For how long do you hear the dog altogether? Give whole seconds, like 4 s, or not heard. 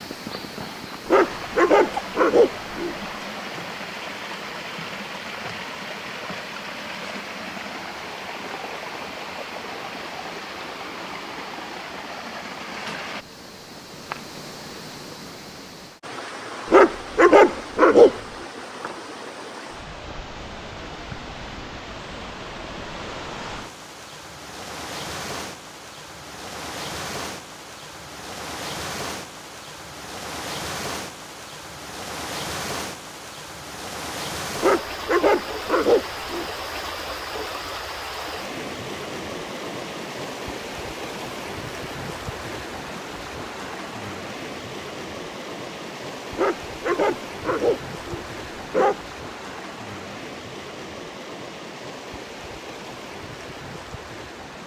8 s.